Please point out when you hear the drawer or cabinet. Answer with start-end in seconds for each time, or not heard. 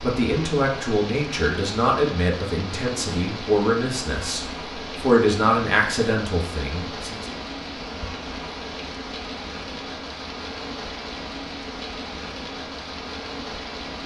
not heard.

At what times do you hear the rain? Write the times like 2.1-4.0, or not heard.
0.0-14.0.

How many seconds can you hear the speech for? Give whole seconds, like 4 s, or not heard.
7 s.